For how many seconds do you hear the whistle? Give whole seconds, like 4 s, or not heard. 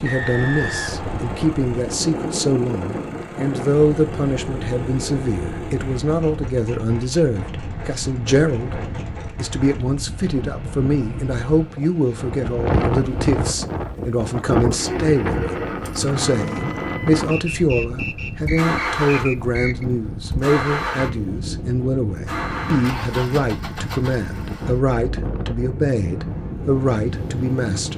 4 s.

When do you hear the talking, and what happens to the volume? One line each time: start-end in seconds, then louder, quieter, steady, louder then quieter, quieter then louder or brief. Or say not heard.
0.0-27.9 steady.